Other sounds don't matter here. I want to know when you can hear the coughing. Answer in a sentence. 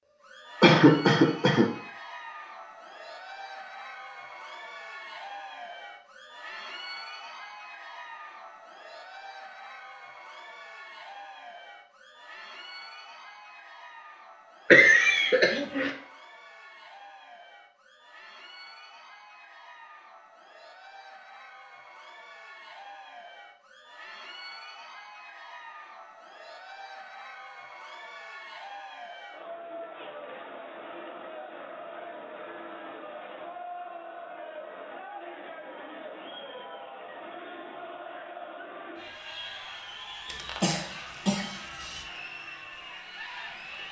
You can hear the coughing from 0.6 to 1.7 s, from 14.7 to 15.9 s and from 40.3 to 42.0 s.